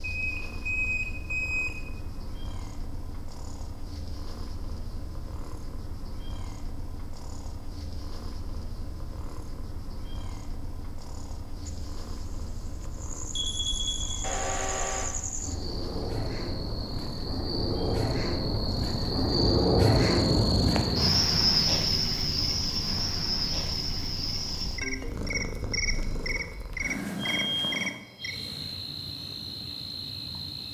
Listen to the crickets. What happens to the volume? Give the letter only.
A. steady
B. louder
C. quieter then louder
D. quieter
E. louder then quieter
E.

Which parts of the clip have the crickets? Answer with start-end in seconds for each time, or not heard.
11.7-30.6.